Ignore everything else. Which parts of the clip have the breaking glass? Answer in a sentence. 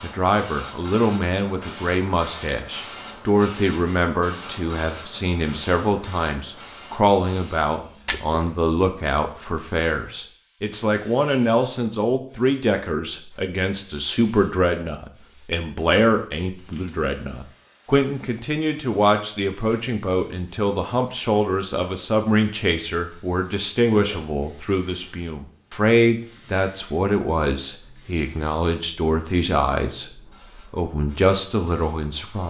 You can hear the breaking glass from 8.1 to 8.5 s.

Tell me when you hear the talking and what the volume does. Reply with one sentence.
The talking can be heard from 0.0 to 32.4 s, at a steady volume.